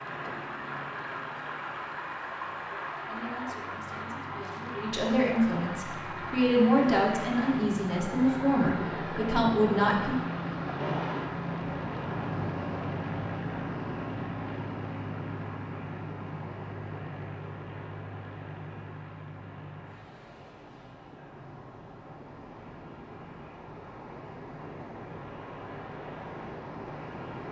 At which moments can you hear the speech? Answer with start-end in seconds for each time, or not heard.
3.0-10.2.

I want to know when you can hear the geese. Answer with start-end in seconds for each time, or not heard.
not heard.